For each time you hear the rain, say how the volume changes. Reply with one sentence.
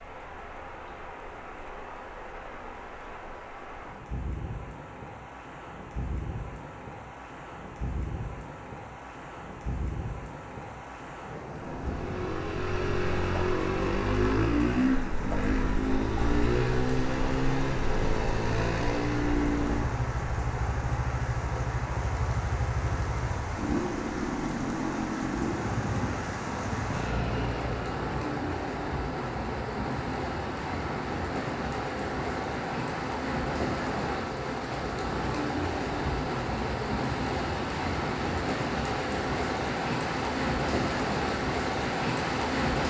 The rain can be heard from 0.0 to 42.8 s, getting louder.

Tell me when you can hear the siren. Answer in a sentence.
You can't hear the siren here.